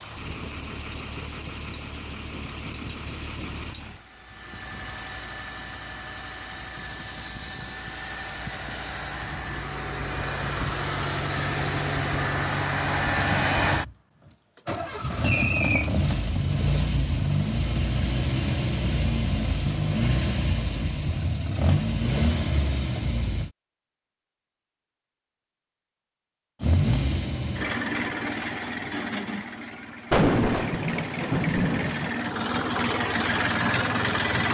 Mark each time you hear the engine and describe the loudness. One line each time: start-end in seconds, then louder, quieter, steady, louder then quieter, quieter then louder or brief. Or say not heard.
0.0-23.5 louder
26.6-34.5 quieter then louder.